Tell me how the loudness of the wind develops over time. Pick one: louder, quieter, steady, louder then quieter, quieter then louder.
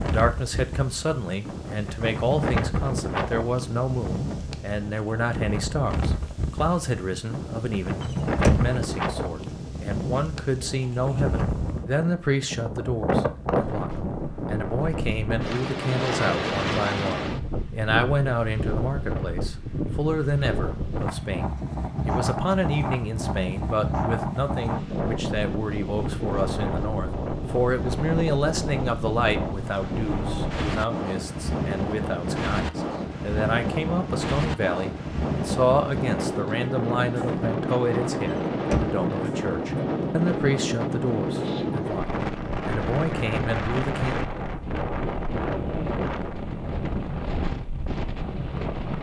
steady.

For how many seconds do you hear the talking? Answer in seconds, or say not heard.
44 s.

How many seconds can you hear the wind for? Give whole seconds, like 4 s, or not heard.
49 s.